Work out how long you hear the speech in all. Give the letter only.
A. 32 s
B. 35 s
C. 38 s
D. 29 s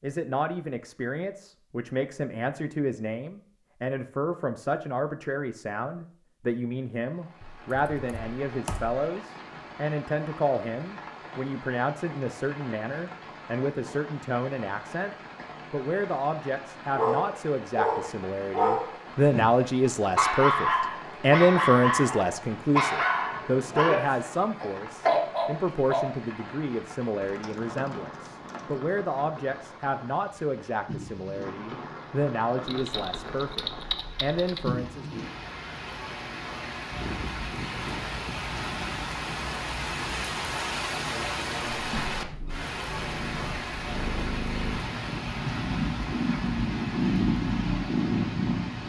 B.